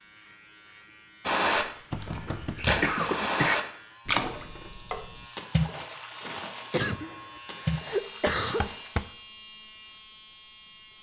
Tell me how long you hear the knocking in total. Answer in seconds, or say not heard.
2 s.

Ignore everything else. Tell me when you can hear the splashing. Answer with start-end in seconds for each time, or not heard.
1.2-9.2.